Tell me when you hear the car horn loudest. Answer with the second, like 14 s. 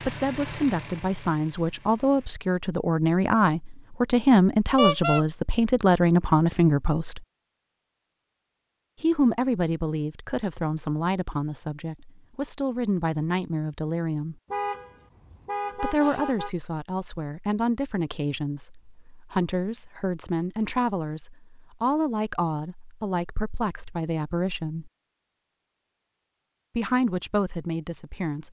5 s.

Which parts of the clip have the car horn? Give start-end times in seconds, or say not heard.
4.8-5.2, 14.5-16.5.